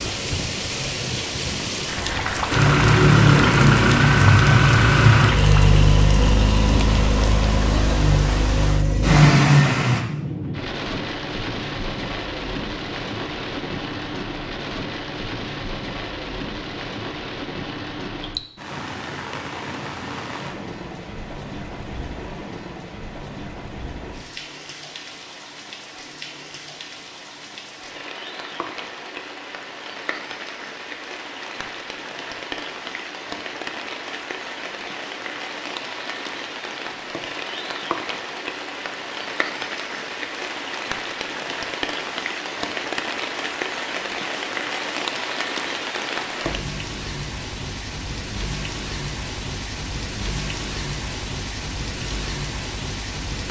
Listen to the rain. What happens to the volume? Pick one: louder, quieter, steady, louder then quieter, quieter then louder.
quieter then louder.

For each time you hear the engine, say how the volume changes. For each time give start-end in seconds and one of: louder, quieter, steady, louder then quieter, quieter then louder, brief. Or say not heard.
2.5-10.1 quieter then louder.